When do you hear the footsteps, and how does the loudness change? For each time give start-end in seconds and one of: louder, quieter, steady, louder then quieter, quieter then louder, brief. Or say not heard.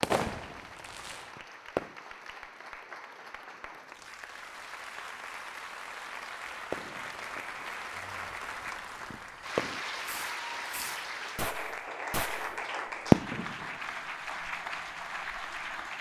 not heard.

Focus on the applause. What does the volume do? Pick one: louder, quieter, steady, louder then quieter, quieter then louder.
louder.